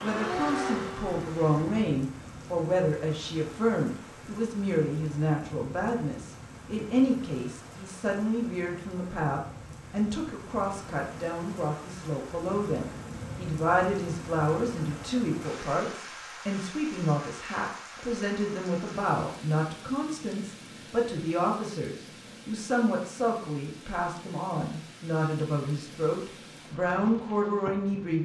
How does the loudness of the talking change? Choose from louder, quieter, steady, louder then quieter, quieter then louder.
steady.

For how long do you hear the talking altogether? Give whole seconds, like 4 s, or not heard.
28 s.